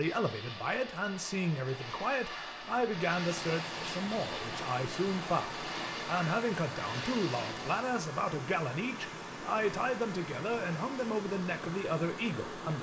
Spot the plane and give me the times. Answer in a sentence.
You can hear the plane from 0.0 to 8.0 s.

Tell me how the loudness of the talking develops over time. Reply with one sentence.
The loudness of the talking stays about the same.